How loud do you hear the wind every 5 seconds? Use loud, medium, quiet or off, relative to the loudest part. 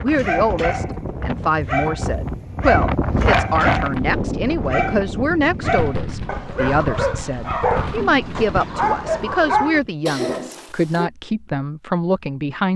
loud, medium, off.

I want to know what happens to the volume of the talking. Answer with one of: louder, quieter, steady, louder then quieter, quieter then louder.
steady.